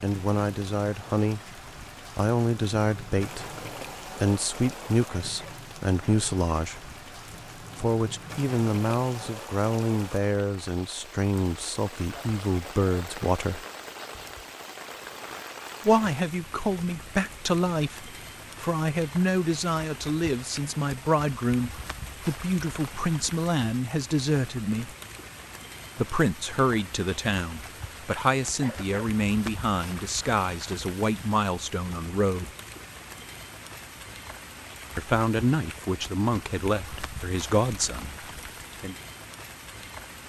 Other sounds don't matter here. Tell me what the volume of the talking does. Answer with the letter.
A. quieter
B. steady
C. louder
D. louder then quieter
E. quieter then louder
B.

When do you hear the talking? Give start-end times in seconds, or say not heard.
0.0-6.9, 7.6-13.6, 15.8-24.9, 25.9-32.5, 35.0-39.0.